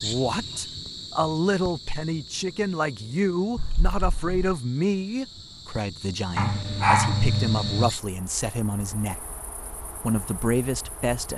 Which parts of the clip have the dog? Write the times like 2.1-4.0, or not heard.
6.3-7.9.